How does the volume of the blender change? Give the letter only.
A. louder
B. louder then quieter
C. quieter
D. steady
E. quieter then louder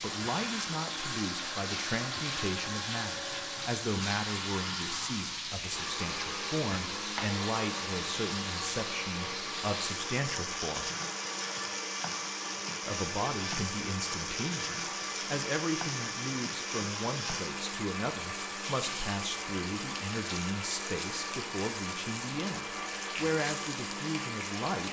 D.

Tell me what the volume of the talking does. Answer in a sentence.
The volume of the talking stays about the same.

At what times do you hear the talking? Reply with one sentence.
The talking can be heard from 0.0 to 10.9 s and from 12.8 to 24.8 s.